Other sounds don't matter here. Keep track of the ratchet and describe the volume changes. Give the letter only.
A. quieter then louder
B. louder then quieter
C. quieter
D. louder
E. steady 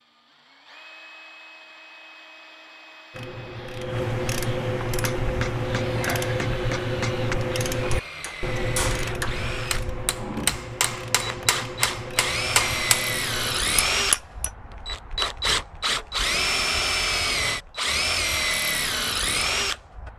C.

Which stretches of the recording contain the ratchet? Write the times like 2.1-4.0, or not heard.
3.1-13.7.